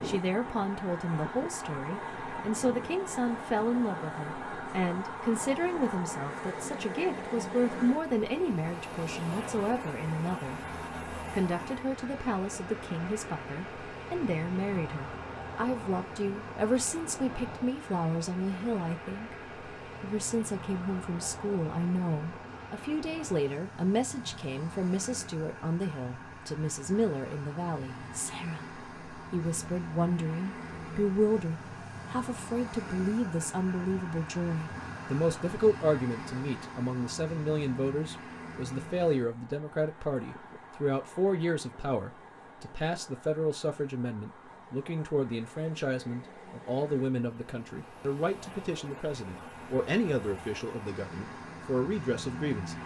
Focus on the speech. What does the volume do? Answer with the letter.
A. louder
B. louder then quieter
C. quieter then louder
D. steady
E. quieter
D.